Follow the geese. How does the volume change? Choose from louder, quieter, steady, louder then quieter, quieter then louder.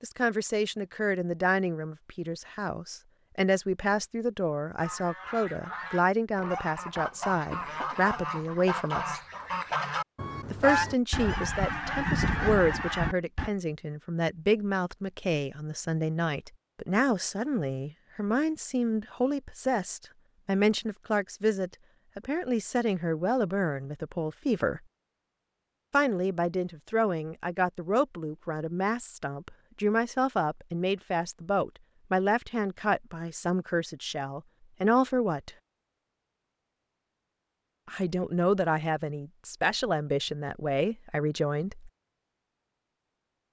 louder.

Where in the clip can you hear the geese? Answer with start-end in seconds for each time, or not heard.
4.8-13.5.